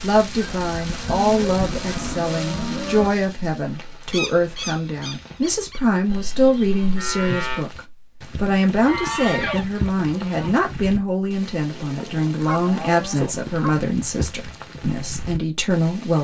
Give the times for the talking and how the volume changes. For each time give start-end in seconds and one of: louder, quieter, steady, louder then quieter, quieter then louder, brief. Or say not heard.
0.0-16.2 steady.